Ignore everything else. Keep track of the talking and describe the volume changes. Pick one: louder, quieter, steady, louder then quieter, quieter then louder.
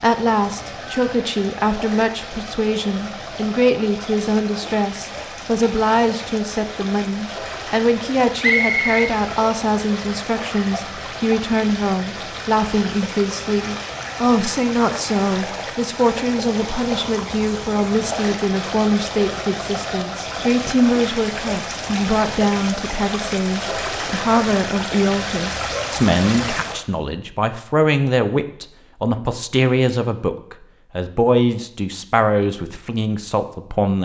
steady.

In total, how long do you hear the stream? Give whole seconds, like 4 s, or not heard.
27 s.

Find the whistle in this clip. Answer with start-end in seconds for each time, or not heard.
8.4-9.1.